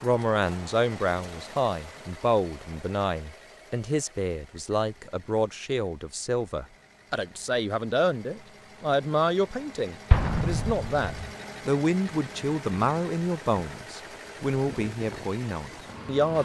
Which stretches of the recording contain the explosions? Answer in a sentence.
You can hear the explosions from 10.1 to 11.3 s.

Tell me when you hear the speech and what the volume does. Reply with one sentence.
The speech can be heard from 0.0 to 16.3 s, at a steady volume.